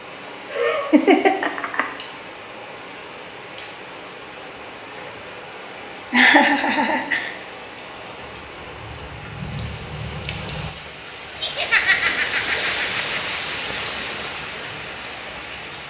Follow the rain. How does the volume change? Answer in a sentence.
The volume of the rain goes up.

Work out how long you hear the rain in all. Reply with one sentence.
The rain can be heard for 16 seconds in total.